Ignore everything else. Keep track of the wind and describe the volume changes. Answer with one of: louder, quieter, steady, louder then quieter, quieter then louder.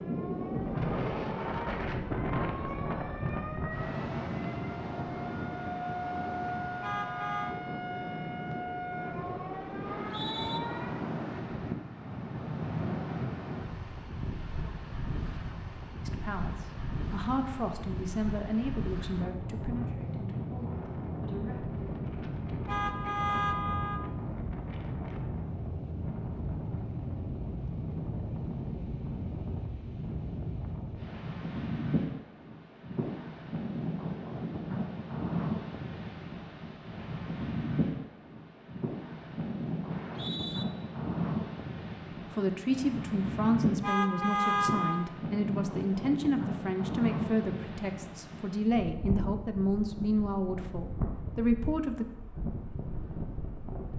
steady.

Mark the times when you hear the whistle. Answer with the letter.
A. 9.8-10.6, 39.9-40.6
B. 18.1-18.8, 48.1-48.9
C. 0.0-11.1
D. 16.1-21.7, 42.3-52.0
A.